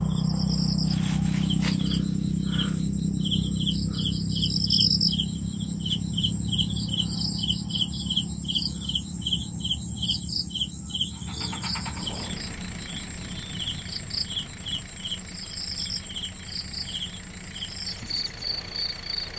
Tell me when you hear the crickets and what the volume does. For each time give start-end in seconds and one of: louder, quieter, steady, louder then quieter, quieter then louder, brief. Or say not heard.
0.0-19.3 quieter.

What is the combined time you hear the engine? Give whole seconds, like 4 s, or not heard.
8 s.